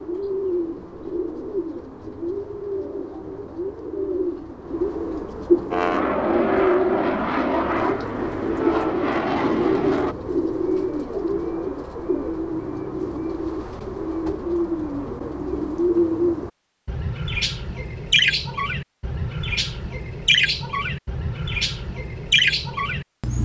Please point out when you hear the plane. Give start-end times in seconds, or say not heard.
5.7-10.2.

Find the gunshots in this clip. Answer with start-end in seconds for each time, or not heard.
not heard.